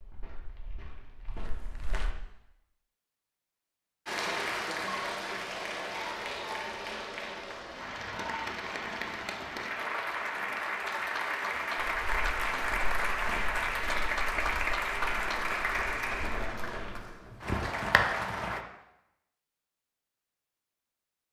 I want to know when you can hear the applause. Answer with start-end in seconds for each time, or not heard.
4.0-18.6.